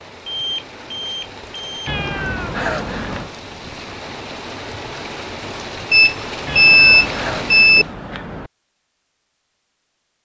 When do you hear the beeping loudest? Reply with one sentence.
The volume of the beeping peaks at 7 seconds.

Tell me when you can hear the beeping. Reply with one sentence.
The beeping can be heard from 0.2 to 1.9 s and from 5.9 to 7.8 s.